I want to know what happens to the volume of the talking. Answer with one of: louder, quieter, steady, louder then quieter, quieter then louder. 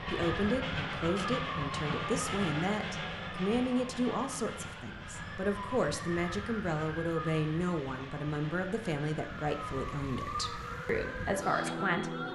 steady.